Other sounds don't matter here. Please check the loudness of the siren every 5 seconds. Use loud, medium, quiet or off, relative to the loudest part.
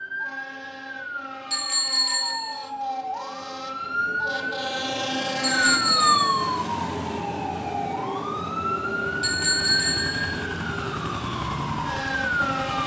medium, loud, loud.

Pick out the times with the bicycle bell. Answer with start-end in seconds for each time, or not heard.
1.5-2.6, 5.4-6.5, 9.2-10.3.